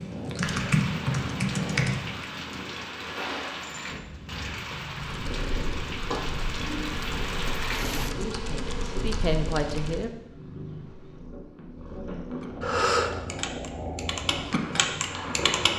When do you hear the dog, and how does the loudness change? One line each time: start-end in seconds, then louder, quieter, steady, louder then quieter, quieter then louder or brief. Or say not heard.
not heard.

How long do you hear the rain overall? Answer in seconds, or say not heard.
8 s.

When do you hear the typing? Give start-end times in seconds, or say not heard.
0.0-2.8, 5.0-10.1, 12.4-15.7.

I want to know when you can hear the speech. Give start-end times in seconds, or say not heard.
8.0-10.1.